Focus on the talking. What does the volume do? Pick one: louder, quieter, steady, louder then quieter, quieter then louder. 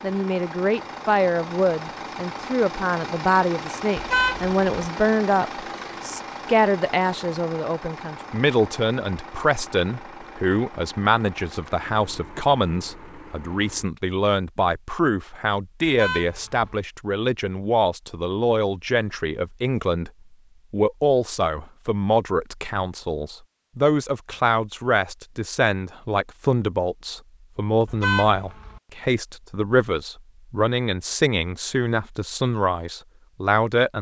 steady.